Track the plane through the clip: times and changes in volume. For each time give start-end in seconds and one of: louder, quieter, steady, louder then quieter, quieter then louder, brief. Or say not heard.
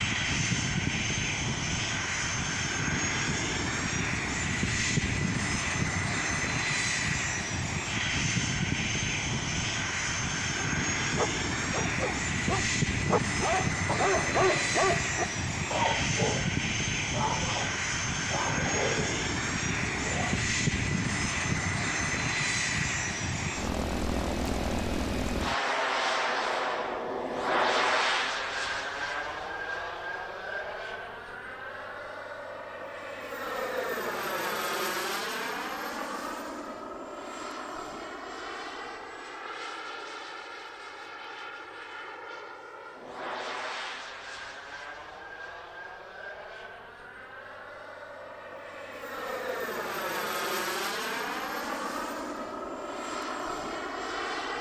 0.0-54.5 quieter.